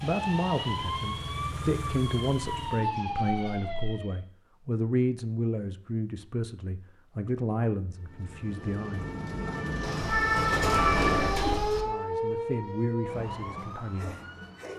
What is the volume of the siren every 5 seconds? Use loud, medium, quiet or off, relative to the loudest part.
medium, medium, loud.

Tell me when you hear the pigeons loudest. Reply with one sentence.
The loudest moment of the pigeons is at 11 seconds.